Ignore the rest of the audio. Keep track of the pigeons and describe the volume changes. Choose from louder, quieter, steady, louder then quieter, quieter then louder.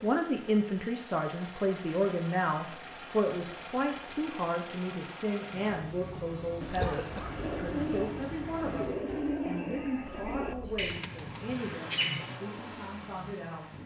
louder then quieter.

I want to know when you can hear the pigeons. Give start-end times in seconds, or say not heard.
6.0-12.4.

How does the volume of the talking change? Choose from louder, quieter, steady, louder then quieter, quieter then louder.
quieter.